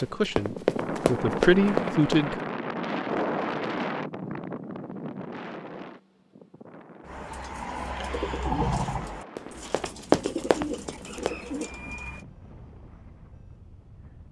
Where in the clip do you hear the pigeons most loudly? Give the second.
9 s.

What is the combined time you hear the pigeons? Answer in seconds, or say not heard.
5 s.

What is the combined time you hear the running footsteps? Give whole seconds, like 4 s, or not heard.
4 s.